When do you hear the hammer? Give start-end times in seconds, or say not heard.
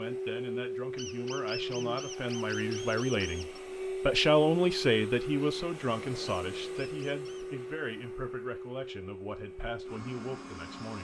not heard.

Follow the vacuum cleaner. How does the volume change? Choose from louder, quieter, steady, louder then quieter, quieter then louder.
quieter.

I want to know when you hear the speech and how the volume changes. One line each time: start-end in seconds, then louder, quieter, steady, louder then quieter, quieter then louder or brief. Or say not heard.
0.0-11.0 louder then quieter.